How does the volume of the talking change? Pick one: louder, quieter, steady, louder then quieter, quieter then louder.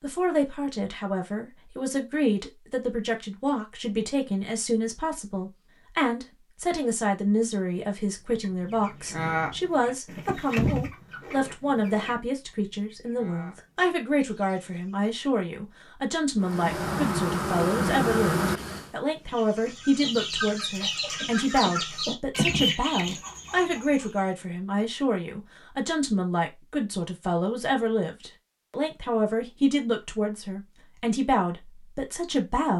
steady.